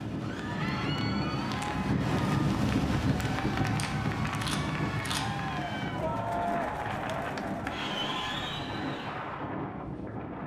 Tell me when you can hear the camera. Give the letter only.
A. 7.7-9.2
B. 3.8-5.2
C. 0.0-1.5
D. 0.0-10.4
B.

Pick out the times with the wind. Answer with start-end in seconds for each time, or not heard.
0.0-10.4.